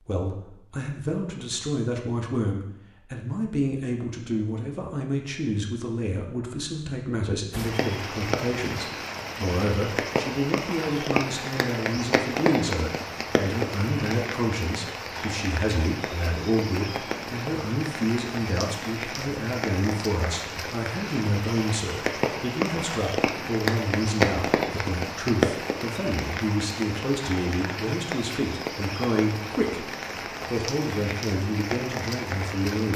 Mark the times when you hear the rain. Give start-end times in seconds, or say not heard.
7.5-32.9.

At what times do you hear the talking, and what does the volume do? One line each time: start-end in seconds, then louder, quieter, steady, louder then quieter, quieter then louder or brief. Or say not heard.
0.1-32.9 steady.